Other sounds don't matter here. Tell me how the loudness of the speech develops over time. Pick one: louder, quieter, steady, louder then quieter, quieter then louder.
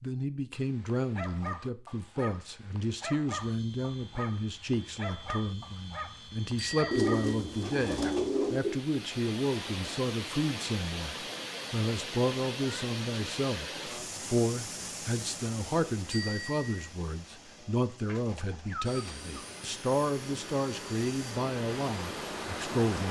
steady.